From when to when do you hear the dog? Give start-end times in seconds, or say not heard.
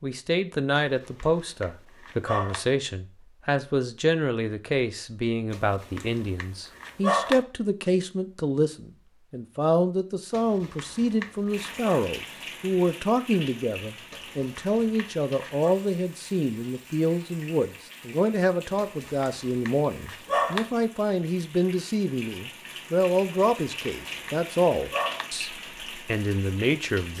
0.8-2.6, 5.5-7.4, 10.3-11.9, 14.1-15.8, 18.8-20.7, 23.4-25.2.